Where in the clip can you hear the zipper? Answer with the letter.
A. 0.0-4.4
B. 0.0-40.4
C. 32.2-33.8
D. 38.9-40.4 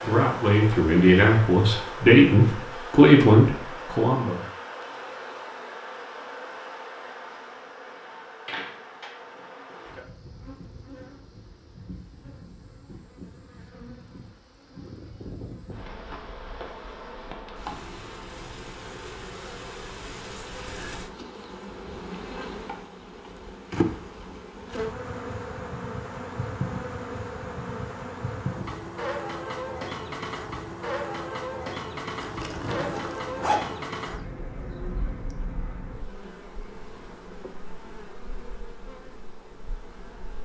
C.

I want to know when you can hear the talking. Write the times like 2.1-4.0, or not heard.
0.0-4.4.